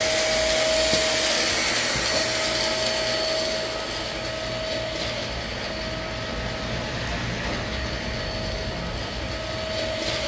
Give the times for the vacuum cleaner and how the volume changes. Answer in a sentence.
The vacuum cleaner can be heard from 0.0 to 10.2 s, getting quieter.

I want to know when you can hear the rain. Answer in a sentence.
The rain can be heard from 0.0 to 10.2 s.